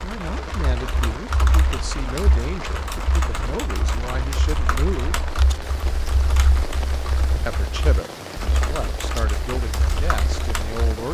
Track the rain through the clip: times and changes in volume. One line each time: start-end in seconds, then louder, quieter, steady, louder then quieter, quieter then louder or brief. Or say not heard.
0.0-11.1 steady.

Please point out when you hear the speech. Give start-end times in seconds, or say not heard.
0.0-5.2, 7.5-11.1.